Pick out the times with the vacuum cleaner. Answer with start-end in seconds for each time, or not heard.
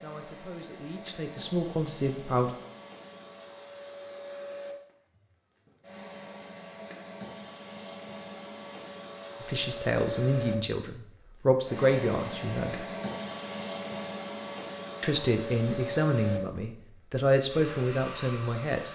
0.0-18.8.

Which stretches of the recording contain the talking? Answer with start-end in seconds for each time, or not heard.
0.0-2.5, 9.4-12.8, 15.0-18.8.